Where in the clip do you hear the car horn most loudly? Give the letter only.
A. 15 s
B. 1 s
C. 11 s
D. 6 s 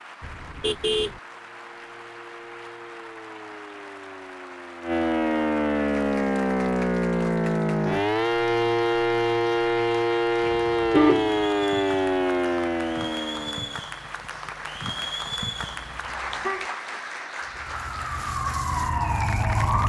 C.